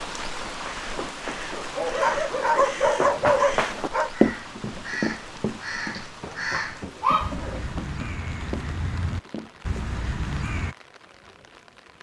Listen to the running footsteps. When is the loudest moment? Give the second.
4 s.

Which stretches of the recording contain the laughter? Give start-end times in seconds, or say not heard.
not heard.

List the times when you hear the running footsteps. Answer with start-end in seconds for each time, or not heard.
0.5-9.8.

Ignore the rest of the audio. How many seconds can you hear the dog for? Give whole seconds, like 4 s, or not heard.
4 s.